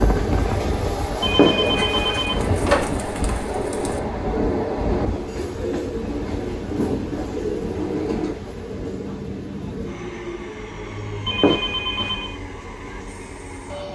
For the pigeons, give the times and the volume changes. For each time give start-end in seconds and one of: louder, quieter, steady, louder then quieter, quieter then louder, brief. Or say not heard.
1.6-8.3 louder.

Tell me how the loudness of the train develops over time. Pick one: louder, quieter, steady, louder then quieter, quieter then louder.
quieter.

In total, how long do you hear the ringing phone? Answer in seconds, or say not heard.
3 s.